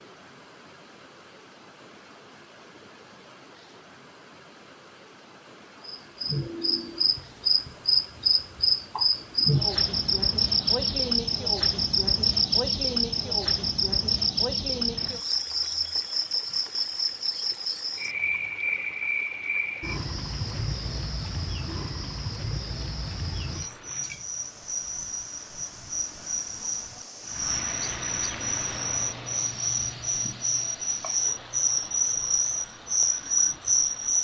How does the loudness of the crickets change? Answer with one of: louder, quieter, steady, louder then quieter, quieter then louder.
quieter then louder.